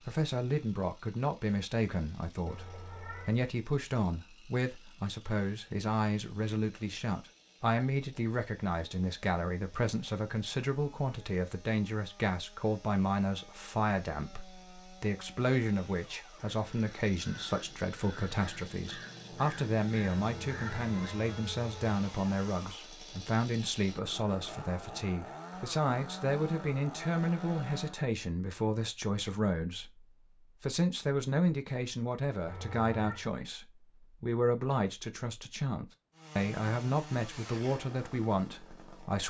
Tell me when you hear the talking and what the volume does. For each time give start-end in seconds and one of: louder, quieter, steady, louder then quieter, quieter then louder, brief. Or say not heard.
0.1-39.2 steady.